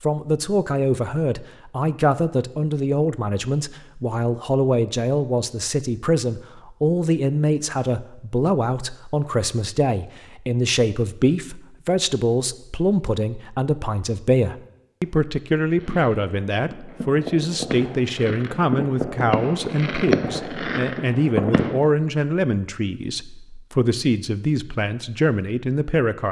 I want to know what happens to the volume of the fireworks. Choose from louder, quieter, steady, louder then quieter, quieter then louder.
louder.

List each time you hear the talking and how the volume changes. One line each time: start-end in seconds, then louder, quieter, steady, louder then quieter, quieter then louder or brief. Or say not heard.
0.0-26.2 steady.